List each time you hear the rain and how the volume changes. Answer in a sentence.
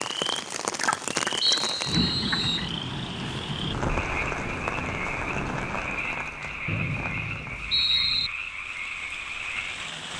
The rain can be heard from 0.0 to 10.1 s, getting quieter.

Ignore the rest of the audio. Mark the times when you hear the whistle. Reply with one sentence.
The whistle can be heard from 1.4 to 2.7 s and from 6.7 to 8.3 s.